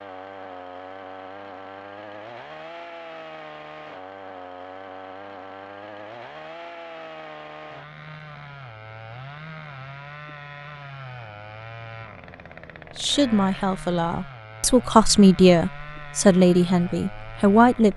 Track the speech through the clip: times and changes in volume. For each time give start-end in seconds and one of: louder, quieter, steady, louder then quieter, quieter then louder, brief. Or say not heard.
12.9-17.9 louder then quieter.